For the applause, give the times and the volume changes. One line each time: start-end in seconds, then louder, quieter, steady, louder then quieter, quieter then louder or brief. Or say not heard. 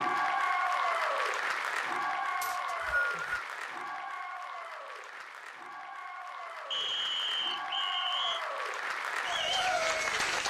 0.0-10.4 quieter then louder.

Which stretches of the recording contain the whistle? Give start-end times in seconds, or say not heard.
2.4-3.5, 6.7-8.4.